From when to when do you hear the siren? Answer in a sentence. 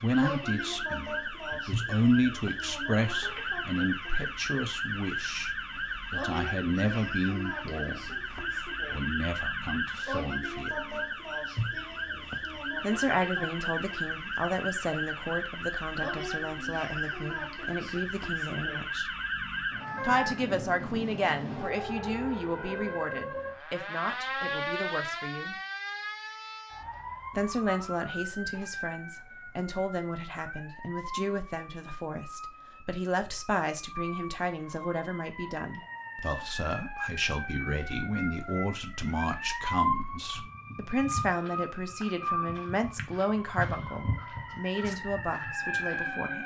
You can hear the siren from 0.0 to 46.4 s.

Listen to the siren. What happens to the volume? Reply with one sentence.
The loudness of the siren goes down, then up.